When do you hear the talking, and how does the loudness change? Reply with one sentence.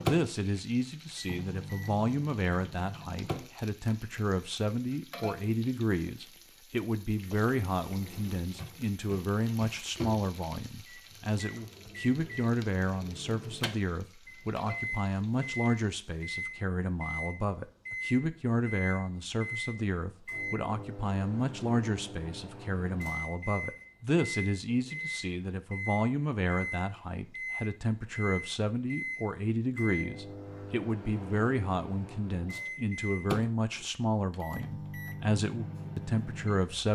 You can hear the talking from 0.0 to 36.8 s, at a steady volume.